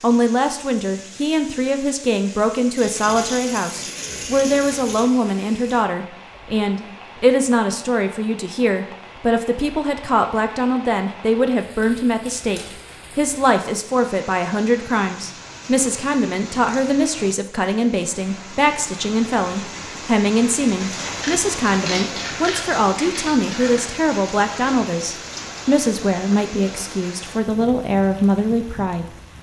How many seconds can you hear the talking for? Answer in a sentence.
The talking can be heard for 29 seconds in total.